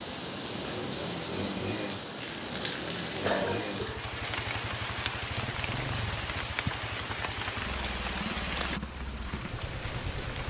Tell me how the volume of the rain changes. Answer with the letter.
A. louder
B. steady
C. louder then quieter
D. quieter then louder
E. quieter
B.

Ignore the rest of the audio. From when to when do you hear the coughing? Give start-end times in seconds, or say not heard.
3.2-4.5.